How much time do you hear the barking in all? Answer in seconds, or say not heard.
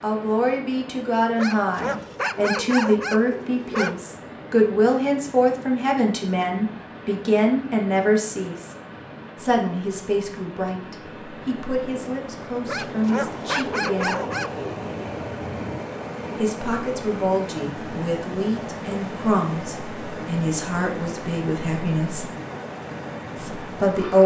5 s.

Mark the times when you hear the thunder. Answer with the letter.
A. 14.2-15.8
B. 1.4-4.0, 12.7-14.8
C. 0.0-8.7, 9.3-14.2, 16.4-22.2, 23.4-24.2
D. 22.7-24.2
A.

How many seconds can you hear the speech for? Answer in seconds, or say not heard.
20 s.